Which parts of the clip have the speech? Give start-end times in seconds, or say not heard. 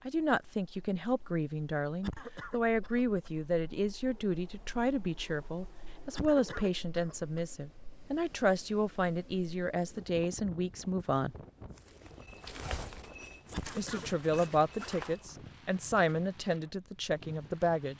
0.1-11.3, 13.8-17.9.